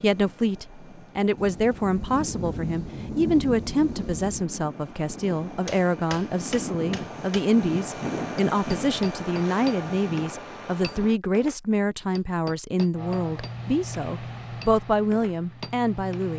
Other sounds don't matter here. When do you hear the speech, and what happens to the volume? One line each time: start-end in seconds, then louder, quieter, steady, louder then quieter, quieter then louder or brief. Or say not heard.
0.0-16.3 steady.